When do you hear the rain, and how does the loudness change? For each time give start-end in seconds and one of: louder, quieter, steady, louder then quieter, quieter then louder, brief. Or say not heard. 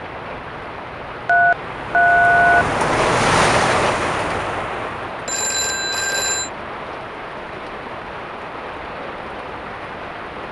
0.0-10.4 louder then quieter.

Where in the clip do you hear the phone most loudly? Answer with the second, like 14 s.
2 s.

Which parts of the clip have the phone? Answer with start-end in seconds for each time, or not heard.
1.2-2.6, 5.2-6.5.